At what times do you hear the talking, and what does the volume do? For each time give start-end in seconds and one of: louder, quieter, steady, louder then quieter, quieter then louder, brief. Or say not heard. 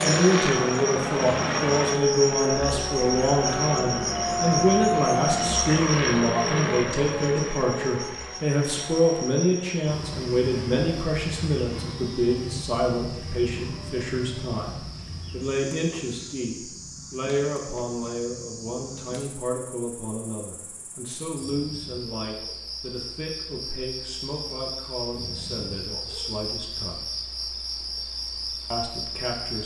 0.0-27.1 quieter
28.7-29.6 brief.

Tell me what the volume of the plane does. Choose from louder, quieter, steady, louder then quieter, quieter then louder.
quieter.